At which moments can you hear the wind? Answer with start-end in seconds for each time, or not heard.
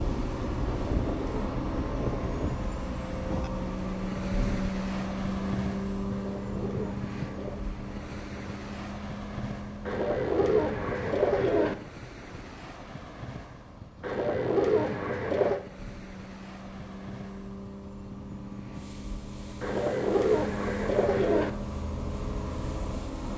0.0-23.3.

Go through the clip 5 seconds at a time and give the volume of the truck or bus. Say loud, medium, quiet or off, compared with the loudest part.
loud, loud, quiet, medium, loud.